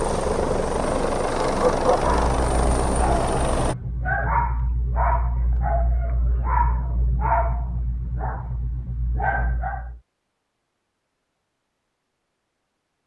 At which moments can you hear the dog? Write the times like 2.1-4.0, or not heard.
1.4-10.0.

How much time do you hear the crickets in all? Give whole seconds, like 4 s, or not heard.
not heard.